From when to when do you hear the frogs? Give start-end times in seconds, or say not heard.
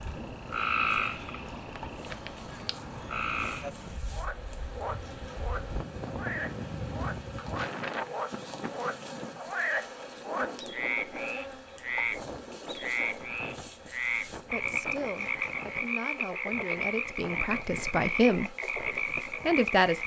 0.0-20.0.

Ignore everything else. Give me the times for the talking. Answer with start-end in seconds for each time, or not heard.
14.5-18.5, 19.4-20.0.